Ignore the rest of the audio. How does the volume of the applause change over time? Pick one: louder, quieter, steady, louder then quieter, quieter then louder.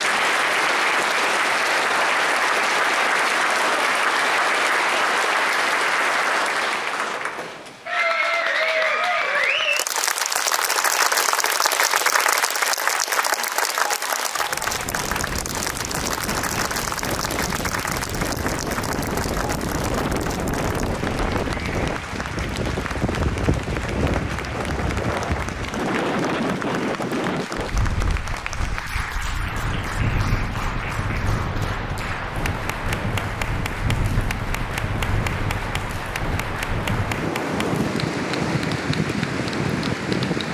quieter.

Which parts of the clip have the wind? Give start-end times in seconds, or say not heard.
14.3-40.4.